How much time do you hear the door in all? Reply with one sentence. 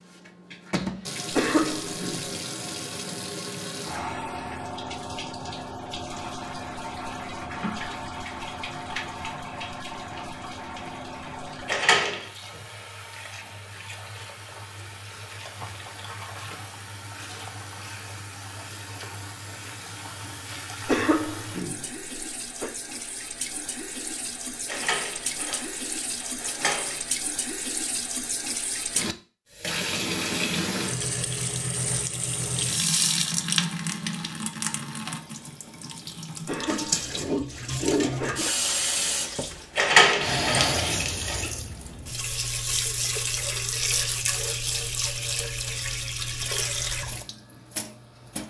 You can hear the door for 5 seconds altogether.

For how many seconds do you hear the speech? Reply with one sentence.
The speech can't be heard in this clip.